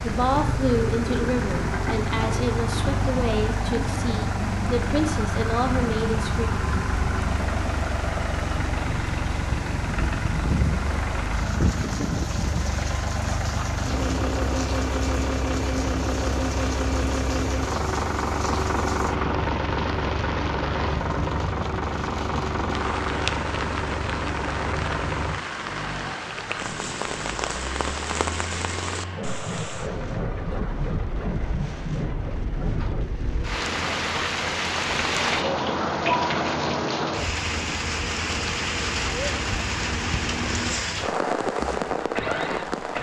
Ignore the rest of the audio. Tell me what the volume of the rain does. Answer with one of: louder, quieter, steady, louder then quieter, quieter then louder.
louder.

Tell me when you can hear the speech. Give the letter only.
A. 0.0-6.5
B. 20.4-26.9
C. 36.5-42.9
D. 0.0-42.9
A.